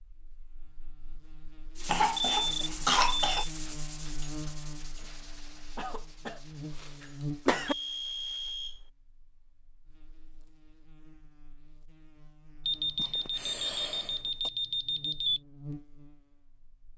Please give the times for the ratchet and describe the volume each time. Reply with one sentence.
You can't hear the ratchet here.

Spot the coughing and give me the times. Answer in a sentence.
You can hear the coughing from 1.9 to 3.5 s, from 5.8 to 7.8 s and from 12.9 to 14.5 s.